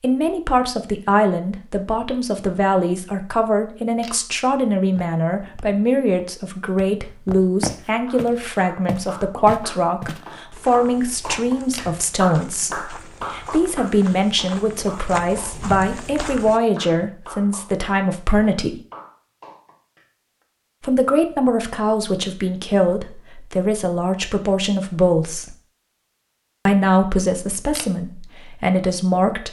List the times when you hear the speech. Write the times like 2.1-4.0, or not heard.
0.0-18.8, 20.8-25.6, 26.6-29.4.